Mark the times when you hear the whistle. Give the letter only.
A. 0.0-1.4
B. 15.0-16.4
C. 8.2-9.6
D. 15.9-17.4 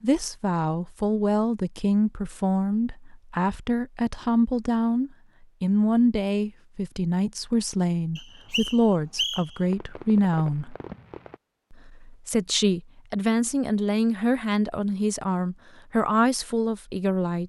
C.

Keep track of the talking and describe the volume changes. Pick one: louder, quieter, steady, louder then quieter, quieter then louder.
steady.